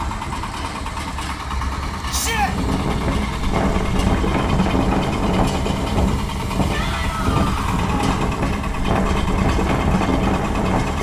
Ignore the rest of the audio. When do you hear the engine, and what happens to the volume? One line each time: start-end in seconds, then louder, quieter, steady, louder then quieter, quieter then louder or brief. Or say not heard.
0.0-10.9 steady.